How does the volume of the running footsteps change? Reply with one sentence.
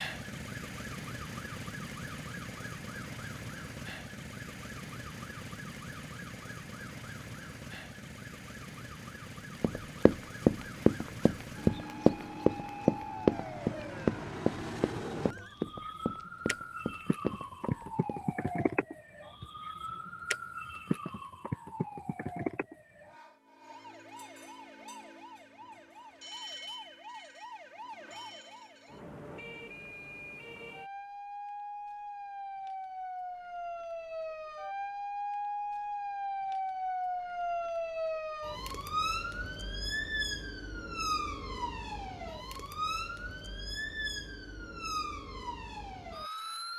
The loudness of the running footsteps goes down.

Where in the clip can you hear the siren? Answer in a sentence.
You can hear the siren from 0.0 to 46.7 s.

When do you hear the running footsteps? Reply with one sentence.
You can hear the running footsteps from 9.6 to 18.2 s.